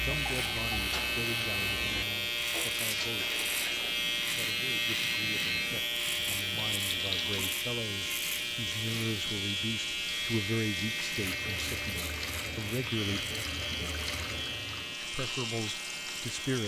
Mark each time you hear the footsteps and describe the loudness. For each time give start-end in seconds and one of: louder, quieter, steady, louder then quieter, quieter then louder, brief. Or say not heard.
not heard.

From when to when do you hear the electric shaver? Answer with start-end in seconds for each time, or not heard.
0.0-16.6.